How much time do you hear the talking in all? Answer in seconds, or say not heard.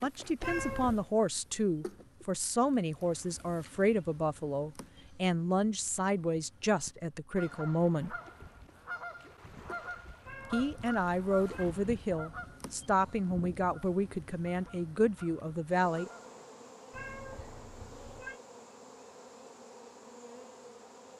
14 s.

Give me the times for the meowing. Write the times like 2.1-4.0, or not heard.
0.4-1.1, 10.2-11.7, 16.9-18.4.